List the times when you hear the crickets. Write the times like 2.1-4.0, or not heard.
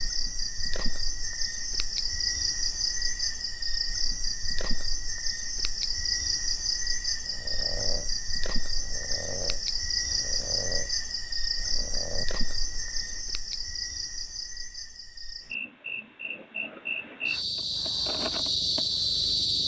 0.0-19.6.